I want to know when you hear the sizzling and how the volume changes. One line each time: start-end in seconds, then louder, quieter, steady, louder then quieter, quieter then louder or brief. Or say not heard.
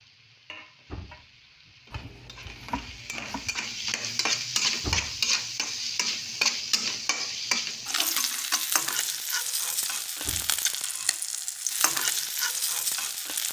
0.0-13.4 louder.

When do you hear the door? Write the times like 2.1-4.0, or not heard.
0.8-1.8, 4.8-5.2, 10.2-11.1.